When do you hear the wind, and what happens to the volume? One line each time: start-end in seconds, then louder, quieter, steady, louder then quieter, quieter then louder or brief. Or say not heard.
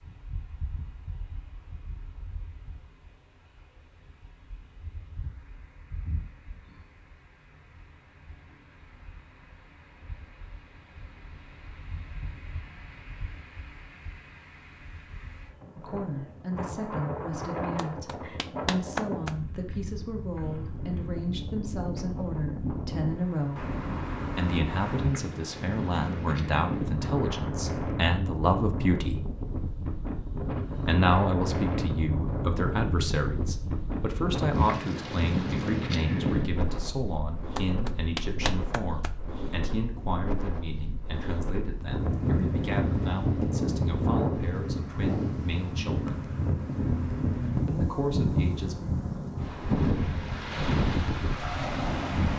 0.0-52.3 louder.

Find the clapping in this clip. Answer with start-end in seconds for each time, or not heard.
17.8-19.4, 37.5-39.1.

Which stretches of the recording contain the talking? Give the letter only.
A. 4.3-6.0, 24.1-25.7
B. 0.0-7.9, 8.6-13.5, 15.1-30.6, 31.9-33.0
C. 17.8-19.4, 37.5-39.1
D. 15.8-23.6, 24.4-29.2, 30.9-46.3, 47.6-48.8
D.